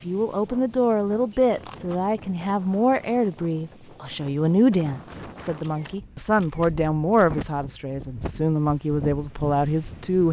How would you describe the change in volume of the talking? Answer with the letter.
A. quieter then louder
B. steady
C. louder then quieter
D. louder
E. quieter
B.